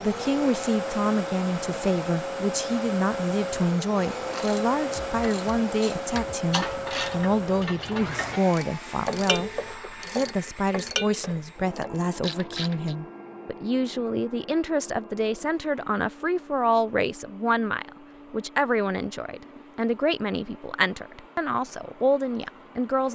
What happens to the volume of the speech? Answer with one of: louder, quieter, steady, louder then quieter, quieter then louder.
steady.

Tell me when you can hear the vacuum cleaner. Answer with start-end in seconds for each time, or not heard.
0.0-23.0.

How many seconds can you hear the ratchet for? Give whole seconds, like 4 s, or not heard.
9 s.